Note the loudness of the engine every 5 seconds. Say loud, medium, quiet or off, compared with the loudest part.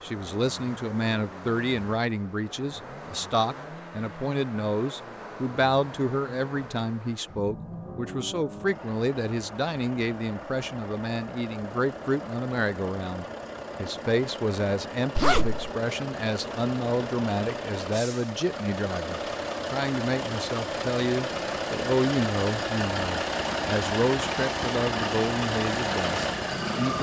quiet, quiet, medium, medium, loud, loud.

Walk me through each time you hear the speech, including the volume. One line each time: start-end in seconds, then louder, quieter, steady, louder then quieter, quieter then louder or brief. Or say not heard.
0.0-26.9 steady.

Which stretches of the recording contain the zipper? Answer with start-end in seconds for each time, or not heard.
15.2-15.7.